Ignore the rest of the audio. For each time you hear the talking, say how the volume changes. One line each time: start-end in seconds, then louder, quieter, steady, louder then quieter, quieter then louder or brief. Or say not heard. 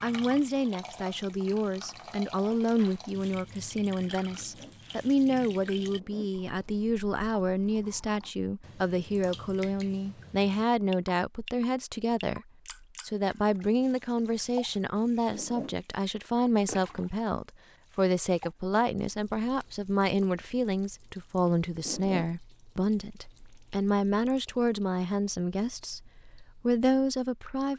0.0-26.0 steady
26.6-27.7 brief.